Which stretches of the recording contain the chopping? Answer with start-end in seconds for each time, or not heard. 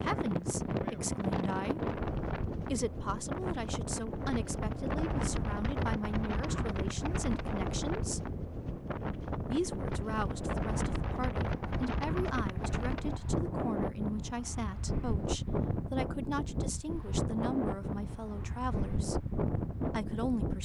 not heard.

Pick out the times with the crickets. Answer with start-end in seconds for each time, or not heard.
not heard.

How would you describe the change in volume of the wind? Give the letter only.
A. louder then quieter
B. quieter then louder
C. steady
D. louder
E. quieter
C.